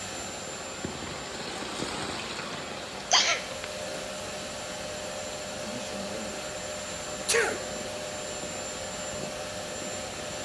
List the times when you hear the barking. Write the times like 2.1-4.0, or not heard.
not heard.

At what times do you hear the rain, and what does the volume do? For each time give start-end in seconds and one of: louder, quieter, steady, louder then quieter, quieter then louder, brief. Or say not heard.
0.0-10.4 quieter.